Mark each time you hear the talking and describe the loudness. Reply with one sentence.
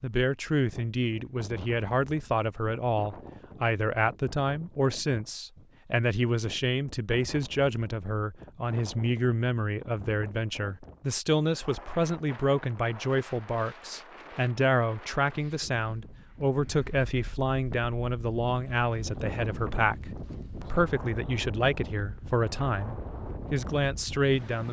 The talking can be heard from 0.0 to 24.6 s, at a steady volume.